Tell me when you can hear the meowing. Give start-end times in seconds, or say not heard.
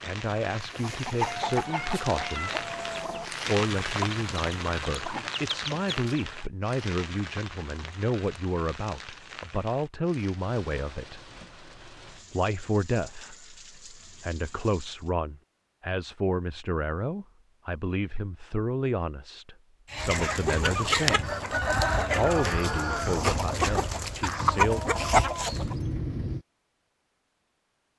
1.2-3.3, 25.5-26.4.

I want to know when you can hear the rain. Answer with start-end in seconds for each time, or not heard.
0.0-15.1.